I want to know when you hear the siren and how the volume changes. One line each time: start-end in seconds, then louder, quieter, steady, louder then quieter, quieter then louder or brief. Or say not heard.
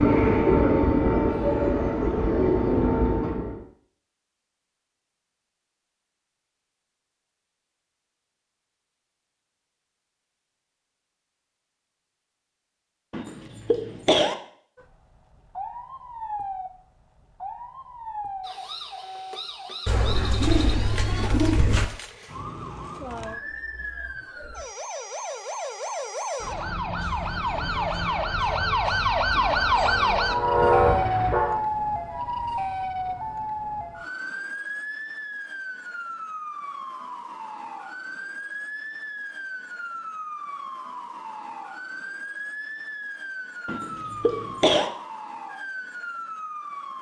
14.8-46.9 louder then quieter.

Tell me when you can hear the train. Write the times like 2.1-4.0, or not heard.
0.0-3.6, 29.6-31.6.